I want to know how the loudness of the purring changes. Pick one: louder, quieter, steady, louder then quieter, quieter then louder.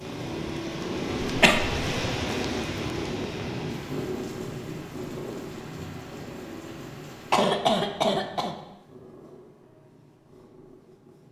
quieter.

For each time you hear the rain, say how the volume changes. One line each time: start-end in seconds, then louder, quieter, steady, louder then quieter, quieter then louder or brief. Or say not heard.
0.0-7.5 quieter.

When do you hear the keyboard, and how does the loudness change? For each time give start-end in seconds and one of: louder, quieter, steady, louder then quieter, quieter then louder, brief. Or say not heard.
not heard.